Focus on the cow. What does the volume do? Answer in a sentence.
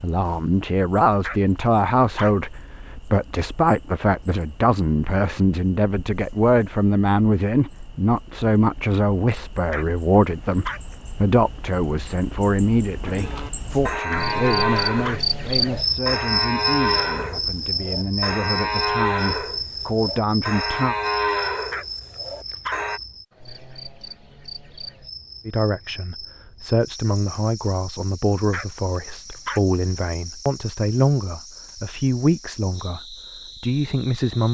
The volume of the cow stays about the same.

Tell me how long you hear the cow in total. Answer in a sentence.
You can hear the cow for 10 seconds altogether.